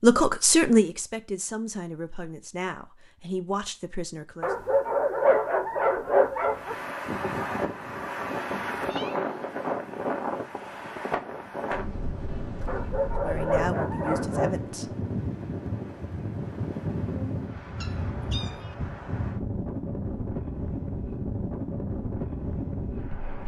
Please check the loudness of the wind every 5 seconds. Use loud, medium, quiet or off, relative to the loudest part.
off, loud, loud, loud, loud.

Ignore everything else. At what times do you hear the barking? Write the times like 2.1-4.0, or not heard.
4.4-6.8, 12.7-14.6.